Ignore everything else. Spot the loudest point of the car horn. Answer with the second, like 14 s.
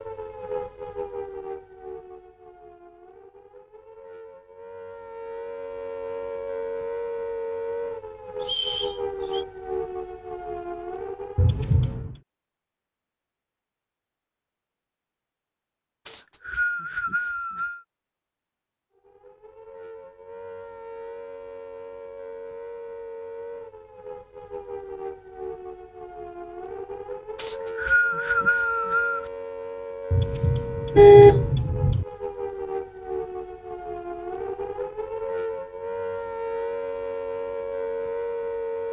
31 s.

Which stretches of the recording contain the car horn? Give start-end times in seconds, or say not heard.
11.3-12.2, 30.1-32.0.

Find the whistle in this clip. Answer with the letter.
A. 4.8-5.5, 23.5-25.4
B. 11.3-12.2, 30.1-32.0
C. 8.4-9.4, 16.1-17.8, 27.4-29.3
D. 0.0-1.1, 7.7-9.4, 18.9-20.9
C.